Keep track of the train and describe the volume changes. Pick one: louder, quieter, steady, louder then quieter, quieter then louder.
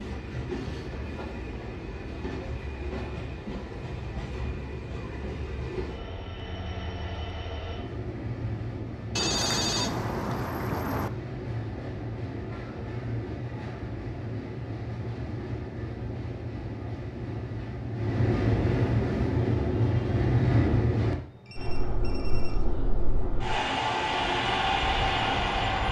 louder.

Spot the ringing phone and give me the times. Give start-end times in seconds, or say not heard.
9.2-11.1, 21.4-22.6.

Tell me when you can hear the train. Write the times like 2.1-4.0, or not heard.
0.0-25.8.